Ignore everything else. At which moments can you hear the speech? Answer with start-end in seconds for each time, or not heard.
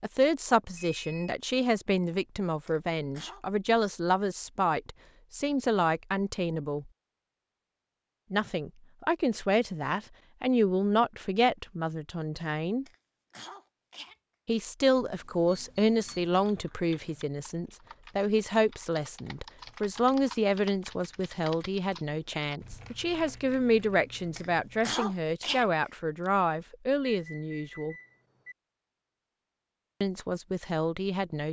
0.0-6.9, 8.3-12.8, 14.4-27.9, 30.0-31.4.